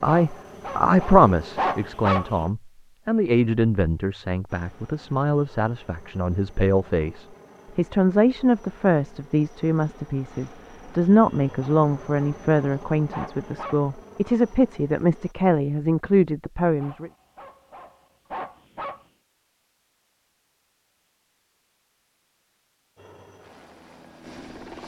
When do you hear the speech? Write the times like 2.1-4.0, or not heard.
0.0-17.1.